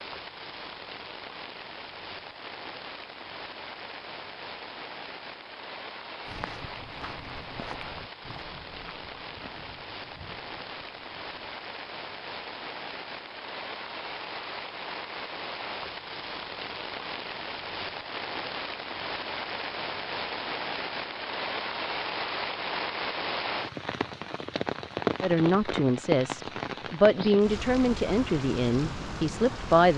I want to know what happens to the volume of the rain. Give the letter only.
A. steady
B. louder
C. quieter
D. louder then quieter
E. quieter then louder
B.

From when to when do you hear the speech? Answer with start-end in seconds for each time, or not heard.
25.2-29.9.